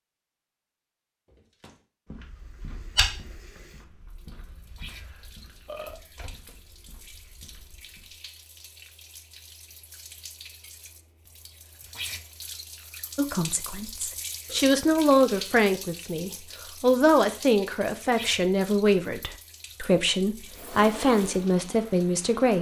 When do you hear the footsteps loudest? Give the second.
3 s.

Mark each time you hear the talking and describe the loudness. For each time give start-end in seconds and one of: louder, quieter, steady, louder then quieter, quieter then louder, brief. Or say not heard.
13.2-22.5 steady.